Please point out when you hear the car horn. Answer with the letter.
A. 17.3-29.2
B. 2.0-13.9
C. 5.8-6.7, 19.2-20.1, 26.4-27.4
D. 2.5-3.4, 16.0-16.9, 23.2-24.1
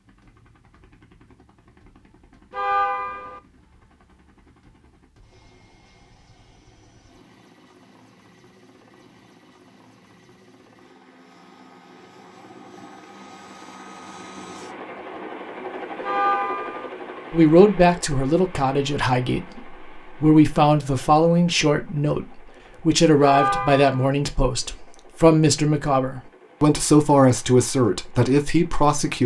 D.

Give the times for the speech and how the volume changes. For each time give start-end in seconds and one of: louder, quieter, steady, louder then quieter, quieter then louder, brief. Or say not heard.
17.3-29.2 steady.